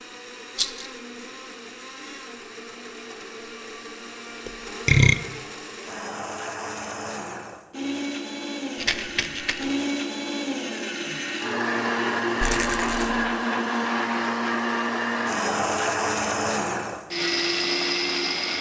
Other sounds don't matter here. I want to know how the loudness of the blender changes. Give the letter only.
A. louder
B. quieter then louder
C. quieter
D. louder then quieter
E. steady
A.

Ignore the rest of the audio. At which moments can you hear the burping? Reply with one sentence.
The burping can be heard from 4.5 to 5.2 s.